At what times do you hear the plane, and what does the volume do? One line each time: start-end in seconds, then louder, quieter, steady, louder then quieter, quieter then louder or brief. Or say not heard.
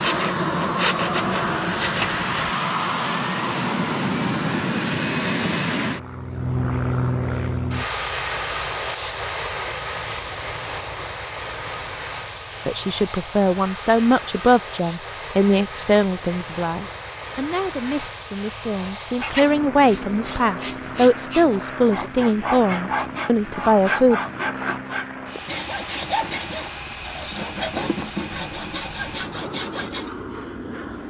0.0-31.0 quieter.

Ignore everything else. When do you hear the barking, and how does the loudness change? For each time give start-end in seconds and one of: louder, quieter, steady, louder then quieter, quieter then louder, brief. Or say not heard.
not heard.